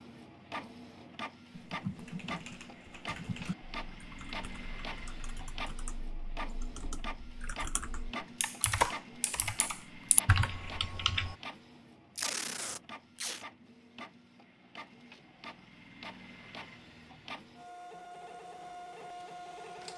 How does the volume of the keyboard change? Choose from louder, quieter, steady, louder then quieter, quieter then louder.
quieter then louder.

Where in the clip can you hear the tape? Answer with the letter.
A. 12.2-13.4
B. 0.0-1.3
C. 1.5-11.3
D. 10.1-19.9
A.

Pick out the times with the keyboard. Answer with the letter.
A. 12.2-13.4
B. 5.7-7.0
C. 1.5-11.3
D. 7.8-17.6
C.